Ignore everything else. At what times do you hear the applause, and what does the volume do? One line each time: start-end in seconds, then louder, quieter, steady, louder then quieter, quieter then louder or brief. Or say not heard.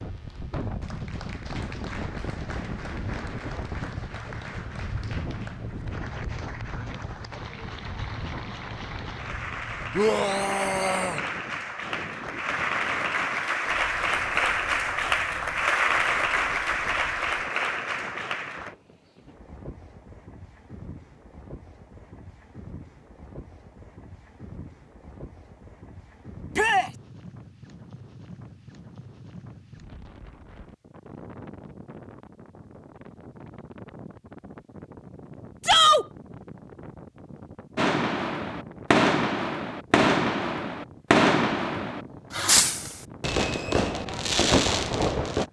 0.0-18.8 louder.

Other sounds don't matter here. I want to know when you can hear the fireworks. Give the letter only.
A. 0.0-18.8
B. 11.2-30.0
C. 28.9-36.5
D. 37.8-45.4
D.